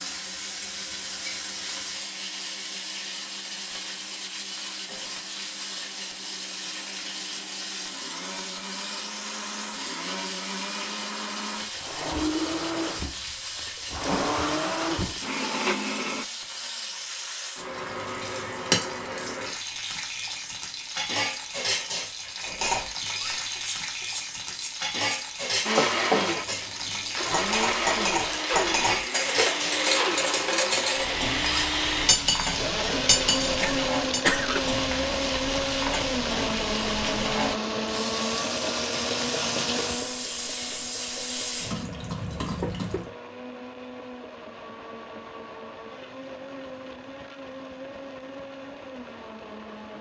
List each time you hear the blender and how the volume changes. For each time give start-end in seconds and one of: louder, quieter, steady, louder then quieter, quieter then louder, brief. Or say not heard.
0.0-16.2 louder
25.6-49.9 quieter.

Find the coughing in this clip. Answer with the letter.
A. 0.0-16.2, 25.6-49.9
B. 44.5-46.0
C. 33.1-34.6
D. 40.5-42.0
C.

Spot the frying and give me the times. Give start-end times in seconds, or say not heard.
0.0-43.1.